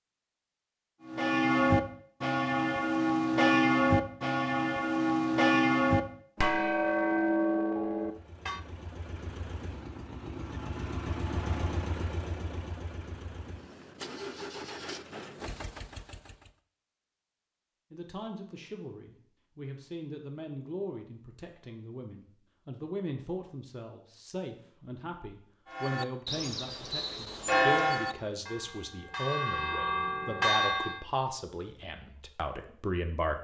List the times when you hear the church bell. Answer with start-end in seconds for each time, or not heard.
1.1-8.6, 25.7-31.0.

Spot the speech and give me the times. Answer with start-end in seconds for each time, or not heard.
17.9-33.3.